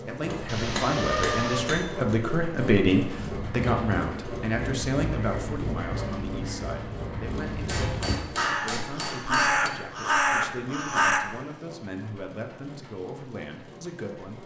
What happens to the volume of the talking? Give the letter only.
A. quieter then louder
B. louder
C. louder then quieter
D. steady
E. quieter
E.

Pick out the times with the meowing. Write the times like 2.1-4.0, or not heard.
0.5-1.6.